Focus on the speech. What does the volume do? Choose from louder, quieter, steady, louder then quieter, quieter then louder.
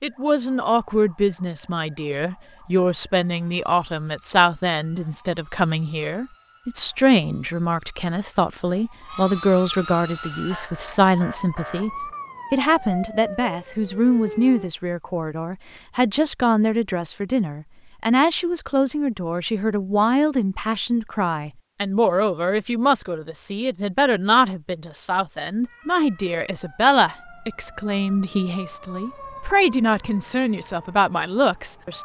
steady.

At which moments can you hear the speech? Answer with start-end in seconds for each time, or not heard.
0.0-31.9.